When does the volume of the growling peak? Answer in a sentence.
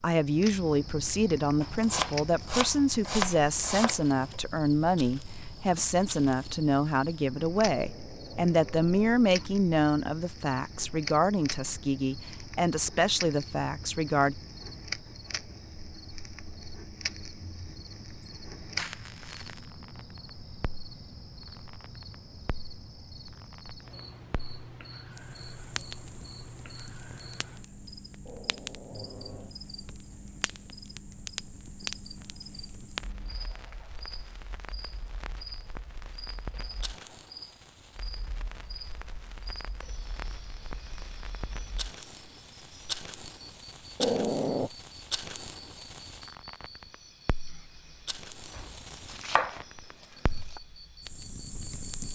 The loudest moment of the growling is at 44 seconds.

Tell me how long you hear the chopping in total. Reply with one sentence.
You can hear the chopping for 5 seconds altogether.